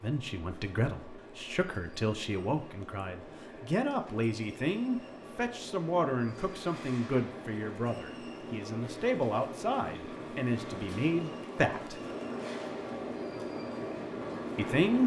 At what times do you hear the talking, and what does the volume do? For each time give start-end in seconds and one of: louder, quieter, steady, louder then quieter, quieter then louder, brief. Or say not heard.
0.0-12.0 steady
14.6-15.0 brief.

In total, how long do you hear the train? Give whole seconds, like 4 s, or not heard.
15 s.